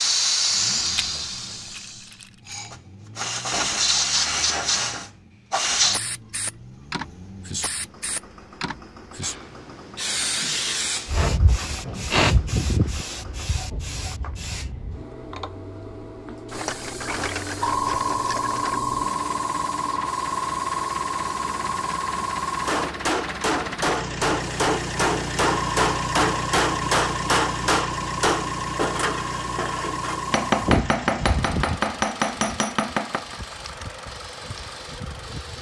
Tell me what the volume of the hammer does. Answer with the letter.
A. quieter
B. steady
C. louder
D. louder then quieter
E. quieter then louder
B.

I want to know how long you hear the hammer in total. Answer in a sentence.
The hammer can be heard for 11 seconds in total.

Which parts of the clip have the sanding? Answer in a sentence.
The sanding can't be heard in this clip.